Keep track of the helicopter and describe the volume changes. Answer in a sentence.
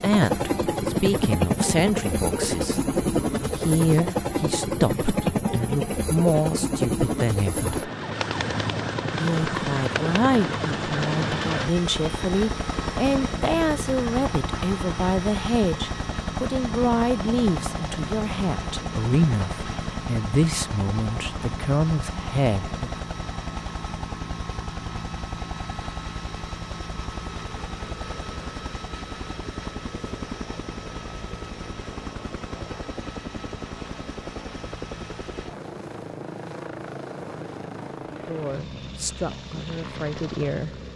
The loudness of the helicopter goes down.